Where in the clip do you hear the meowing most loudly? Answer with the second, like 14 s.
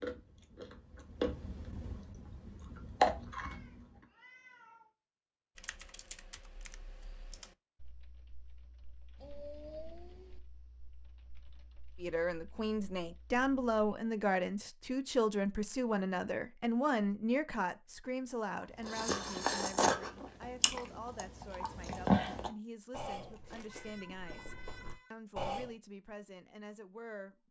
10 s.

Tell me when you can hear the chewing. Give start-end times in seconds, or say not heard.
0.0-3.9, 18.8-25.6.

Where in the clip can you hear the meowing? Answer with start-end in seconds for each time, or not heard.
3.4-5.0, 9.2-10.4, 23.6-25.1.